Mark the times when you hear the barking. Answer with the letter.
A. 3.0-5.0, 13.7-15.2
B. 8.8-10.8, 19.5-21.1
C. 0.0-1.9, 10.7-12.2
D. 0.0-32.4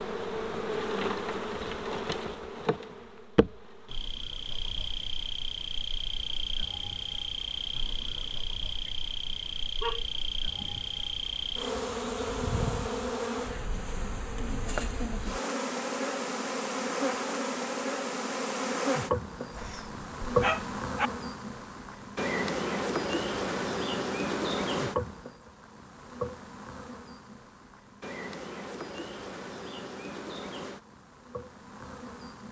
B.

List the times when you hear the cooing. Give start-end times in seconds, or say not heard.
not heard.